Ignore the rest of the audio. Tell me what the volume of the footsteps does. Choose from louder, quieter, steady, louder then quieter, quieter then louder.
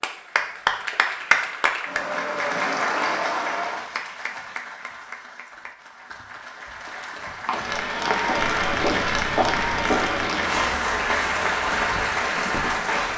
quieter.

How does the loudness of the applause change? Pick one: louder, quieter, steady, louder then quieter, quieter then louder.
quieter then louder.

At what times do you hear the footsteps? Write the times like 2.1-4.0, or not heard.
7.0-12.9.